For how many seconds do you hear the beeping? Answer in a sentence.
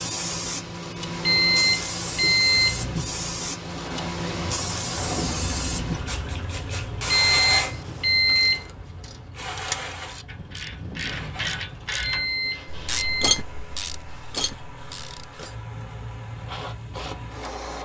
You can hear the beeping for 5 seconds altogether.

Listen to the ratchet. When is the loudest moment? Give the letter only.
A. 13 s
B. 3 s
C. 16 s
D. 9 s
A.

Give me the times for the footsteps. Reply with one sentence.
You can't hear the footsteps here.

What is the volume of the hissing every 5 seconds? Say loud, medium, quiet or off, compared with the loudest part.
loud, loud, quiet, medium.